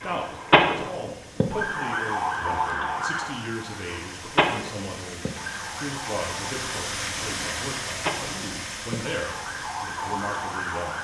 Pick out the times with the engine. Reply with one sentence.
You can hear the engine from 0.0 to 10.9 s.